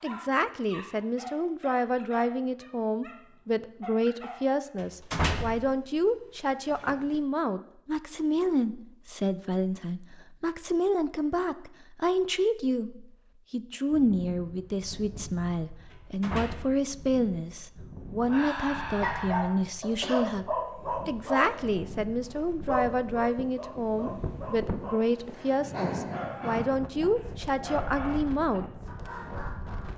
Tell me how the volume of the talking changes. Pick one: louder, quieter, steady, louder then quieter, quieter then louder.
steady.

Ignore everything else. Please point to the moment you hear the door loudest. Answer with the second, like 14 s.
5 s.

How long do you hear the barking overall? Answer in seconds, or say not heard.
16 s.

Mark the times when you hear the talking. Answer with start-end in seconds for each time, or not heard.
0.0-20.4, 21.1-28.6.